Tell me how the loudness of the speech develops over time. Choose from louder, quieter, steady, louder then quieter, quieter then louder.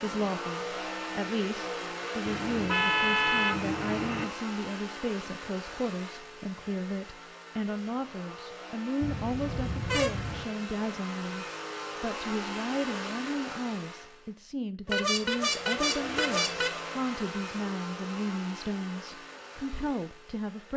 steady.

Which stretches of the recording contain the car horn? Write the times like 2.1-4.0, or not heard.
2.2-4.2, 9.0-10.4, 14.8-16.8.